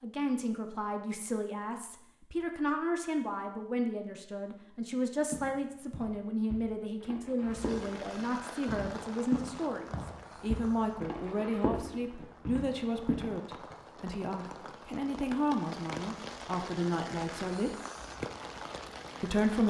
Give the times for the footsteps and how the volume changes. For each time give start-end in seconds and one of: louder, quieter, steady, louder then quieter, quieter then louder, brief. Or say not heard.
5.3-13.8 louder.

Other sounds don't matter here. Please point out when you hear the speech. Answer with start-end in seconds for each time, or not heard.
0.0-17.8, 19.2-19.6.